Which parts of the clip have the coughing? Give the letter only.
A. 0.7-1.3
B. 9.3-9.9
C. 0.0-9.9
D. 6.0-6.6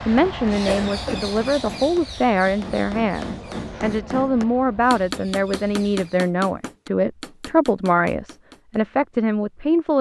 A.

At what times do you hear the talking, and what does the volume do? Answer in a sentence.
The talking can be heard from 0.0 to 9.9 s, at a steady volume.